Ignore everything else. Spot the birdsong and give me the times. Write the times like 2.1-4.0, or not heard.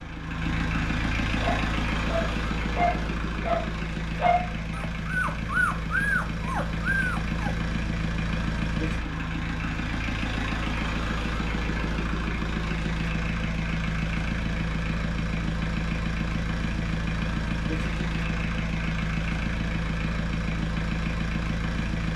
not heard.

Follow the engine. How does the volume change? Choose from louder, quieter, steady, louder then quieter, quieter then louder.
steady.